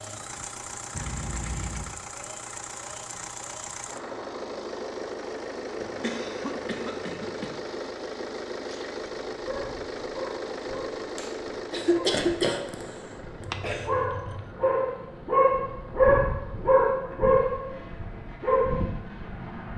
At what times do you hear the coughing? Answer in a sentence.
You can hear the coughing from 5.8 to 7.6 s and from 11.2 to 13.9 s.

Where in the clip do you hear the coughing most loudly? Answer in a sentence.
The volume of the coughing peaks at 12 seconds.